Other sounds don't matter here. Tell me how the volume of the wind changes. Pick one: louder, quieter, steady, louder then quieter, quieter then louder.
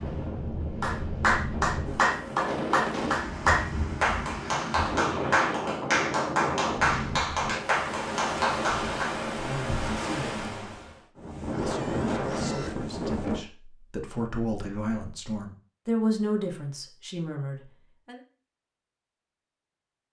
steady.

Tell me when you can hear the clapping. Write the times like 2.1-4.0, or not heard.
0.8-9.2.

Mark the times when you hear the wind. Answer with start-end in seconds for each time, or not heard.
0.0-13.4.